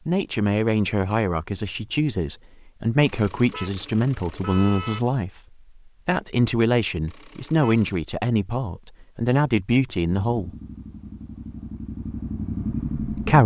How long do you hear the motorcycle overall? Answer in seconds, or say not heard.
3 s.